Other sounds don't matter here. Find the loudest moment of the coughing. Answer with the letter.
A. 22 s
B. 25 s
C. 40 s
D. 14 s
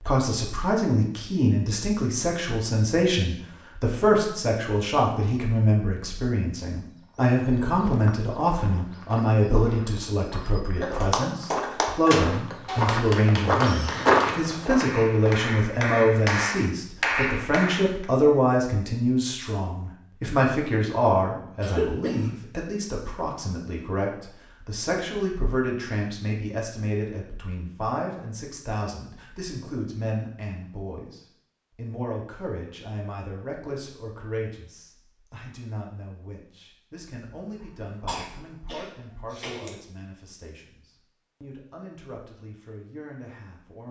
A.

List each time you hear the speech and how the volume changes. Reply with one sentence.
The speech can be heard from 0.0 to 43.8 s, getting quieter.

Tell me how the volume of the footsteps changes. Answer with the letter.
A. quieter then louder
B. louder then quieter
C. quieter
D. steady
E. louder
E.